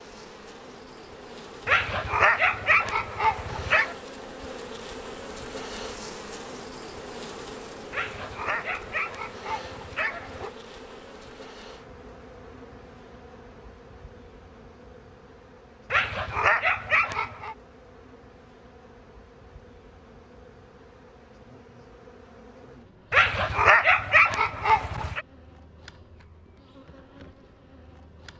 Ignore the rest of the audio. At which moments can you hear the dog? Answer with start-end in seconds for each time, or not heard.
1.6-4.0, 7.9-10.5, 15.9-17.6, 23.1-25.2.